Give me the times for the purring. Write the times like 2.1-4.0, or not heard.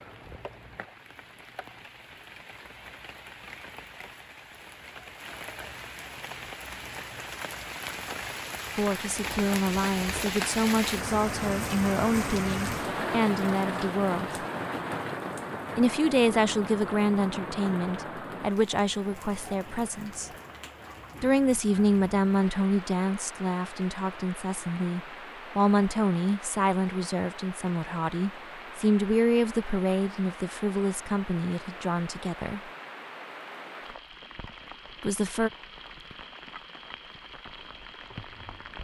not heard.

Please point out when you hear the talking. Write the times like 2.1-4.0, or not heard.
8.8-14.4, 15.8-20.3, 21.2-32.6, 35.0-35.5.